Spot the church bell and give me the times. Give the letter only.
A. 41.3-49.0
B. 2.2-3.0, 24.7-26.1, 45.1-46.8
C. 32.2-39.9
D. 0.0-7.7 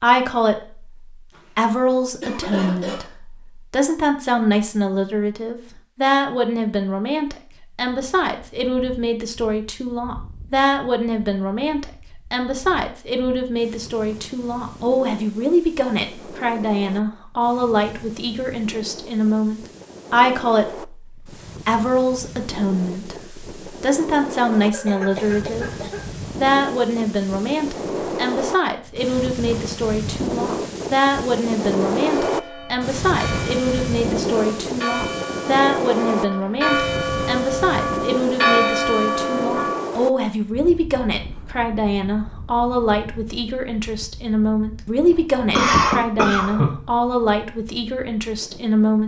C.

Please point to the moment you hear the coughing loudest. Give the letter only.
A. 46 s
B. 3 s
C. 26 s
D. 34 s
A.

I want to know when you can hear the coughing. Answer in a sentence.
The coughing can be heard from 2.2 to 3.0 s, from 24.7 to 26.1 s and from 45.1 to 46.8 s.